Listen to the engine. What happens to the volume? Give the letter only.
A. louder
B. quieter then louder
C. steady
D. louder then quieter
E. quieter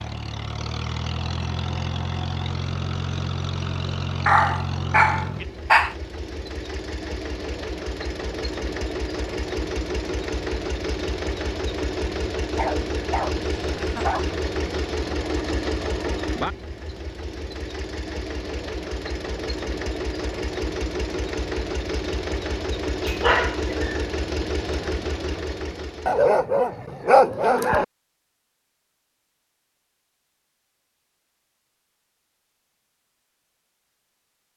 C.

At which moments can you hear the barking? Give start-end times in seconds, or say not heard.
4.2-6.0, 12.6-14.3, 23.0-24.1, 26.1-27.9.